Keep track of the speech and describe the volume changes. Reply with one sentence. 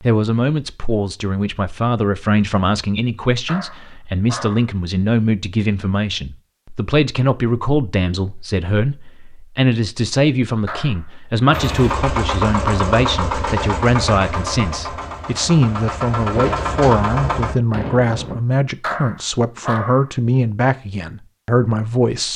The volume of the speech stays about the same.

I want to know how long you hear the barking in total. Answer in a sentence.
You can hear the barking for 4 seconds altogether.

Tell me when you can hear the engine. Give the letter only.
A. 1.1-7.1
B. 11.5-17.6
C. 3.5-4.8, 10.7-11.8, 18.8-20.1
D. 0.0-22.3
B.